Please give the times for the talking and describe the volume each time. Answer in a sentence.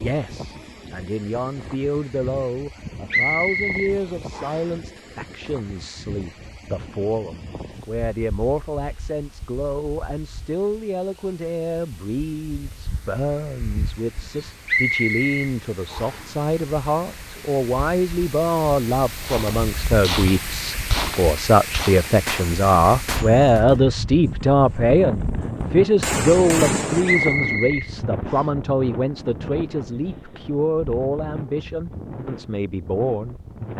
The talking can be heard from 0.0 to 33.7 s, getting louder then quieter.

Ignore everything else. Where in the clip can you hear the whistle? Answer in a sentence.
You can hear the whistle from 3.1 to 4.7 s, from 14.7 to 16.2 s and from 27.1 to 28.4 s.